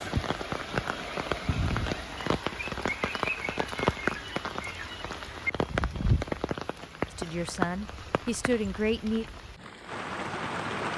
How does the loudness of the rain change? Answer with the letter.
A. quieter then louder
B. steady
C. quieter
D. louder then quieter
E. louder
C.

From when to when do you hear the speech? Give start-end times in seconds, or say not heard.
7.2-9.2.